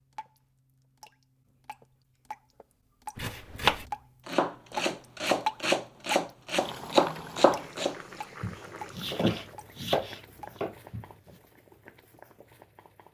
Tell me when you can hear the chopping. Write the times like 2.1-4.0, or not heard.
3.1-11.1.